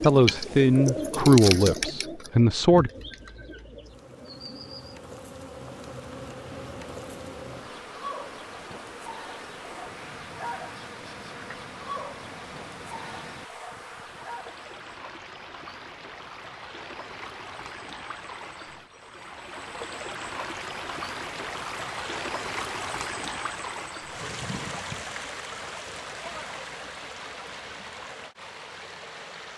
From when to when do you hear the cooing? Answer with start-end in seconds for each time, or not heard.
0.0-5.0.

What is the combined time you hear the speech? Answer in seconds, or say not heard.
3 s.